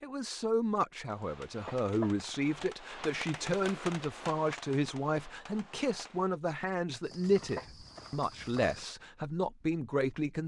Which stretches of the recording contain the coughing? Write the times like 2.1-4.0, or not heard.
1.2-2.6, 7.1-7.7.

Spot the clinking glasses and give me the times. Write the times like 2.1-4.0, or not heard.
not heard.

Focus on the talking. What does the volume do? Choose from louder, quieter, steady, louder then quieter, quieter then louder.
steady.